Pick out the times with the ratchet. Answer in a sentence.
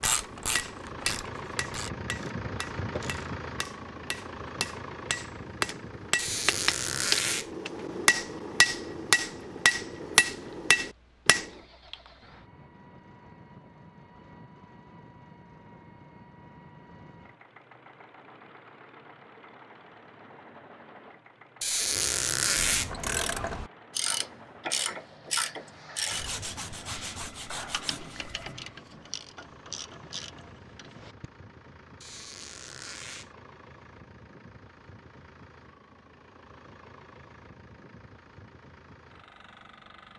The ratchet can be heard from 0.0 to 3.3 s and from 22.6 to 31.3 s.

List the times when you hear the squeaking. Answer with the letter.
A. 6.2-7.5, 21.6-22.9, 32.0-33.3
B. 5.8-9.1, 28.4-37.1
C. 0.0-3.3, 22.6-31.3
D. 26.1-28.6
A.